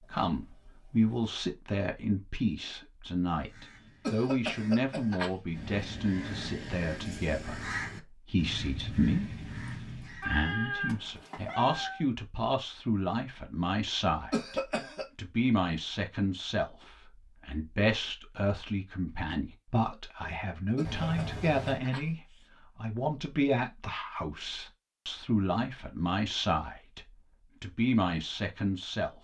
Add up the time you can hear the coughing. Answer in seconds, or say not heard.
4 s.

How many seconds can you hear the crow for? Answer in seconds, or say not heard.
7 s.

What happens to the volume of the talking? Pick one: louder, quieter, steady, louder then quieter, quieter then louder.
steady.